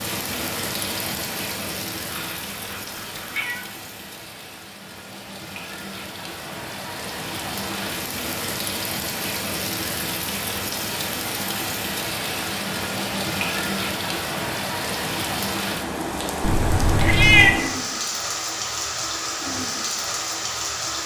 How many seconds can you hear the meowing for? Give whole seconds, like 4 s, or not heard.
3 s.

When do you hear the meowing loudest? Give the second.
17 s.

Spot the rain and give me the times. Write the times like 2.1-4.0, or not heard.
0.0-21.0.